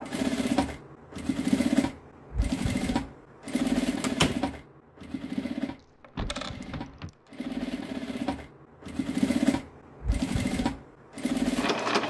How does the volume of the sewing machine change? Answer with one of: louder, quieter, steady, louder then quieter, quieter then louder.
quieter then louder.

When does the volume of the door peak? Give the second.
4 s.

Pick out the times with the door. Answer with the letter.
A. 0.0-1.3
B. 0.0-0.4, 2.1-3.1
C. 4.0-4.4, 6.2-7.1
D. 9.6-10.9
C.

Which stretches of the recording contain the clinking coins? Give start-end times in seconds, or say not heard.
6.0-7.3.